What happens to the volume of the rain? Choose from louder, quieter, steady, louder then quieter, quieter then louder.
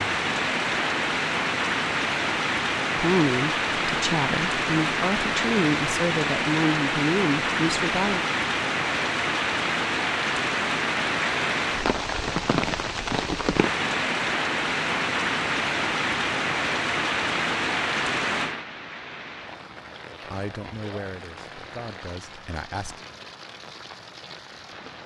quieter.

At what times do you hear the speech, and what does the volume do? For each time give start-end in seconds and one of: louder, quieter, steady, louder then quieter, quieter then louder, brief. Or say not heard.
3.0-8.2 steady
20.2-23.0 brief.